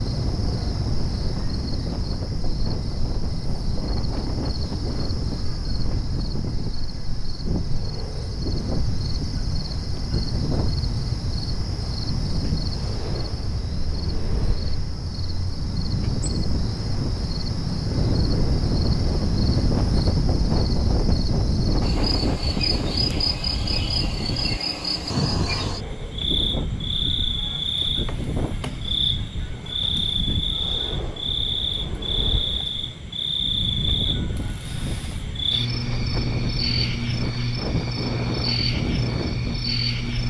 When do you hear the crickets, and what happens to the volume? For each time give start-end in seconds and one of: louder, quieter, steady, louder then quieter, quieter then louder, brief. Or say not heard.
0.0-40.2 louder.